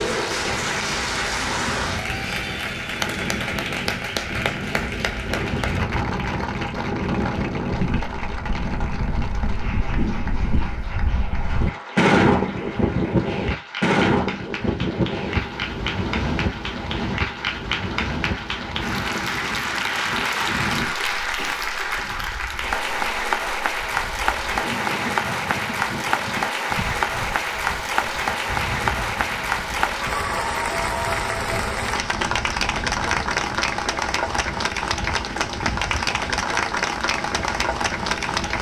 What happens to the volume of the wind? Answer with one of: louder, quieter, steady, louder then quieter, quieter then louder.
louder then quieter.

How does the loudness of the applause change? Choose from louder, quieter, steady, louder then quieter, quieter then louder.
quieter then louder.